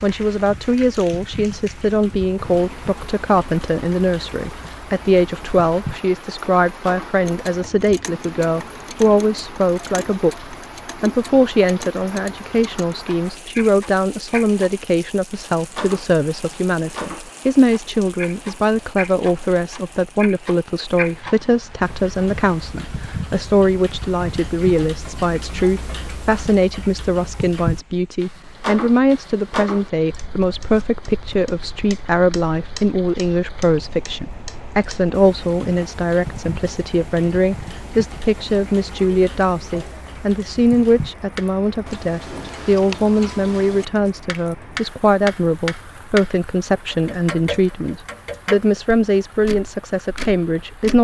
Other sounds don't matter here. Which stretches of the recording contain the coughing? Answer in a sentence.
The coughing can't be heard in this clip.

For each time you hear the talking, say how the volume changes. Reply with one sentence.
You can hear the talking from 0.0 to 51.0 s, at a steady volume.